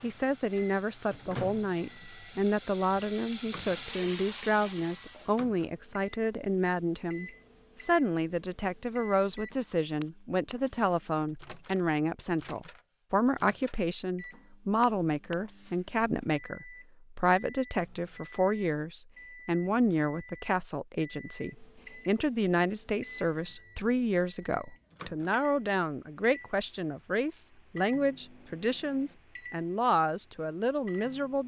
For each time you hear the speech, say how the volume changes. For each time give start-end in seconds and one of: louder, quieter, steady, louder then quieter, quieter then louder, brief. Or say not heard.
0.0-31.4 steady.